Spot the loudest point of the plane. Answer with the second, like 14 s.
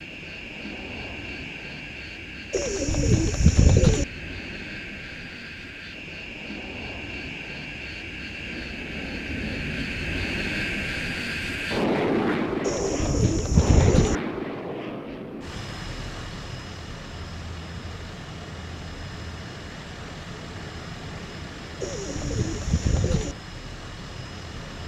12 s.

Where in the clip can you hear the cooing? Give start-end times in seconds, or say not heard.
2.5-4.0, 12.6-14.2, 21.8-23.4.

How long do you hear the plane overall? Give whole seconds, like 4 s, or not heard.
25 s.